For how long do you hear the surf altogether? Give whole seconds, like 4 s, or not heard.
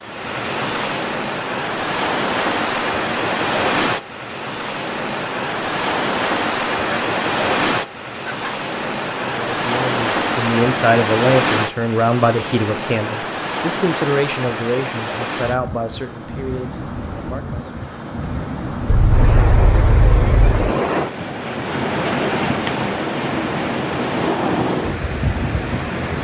26 s.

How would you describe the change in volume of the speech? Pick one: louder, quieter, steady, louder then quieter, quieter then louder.
quieter.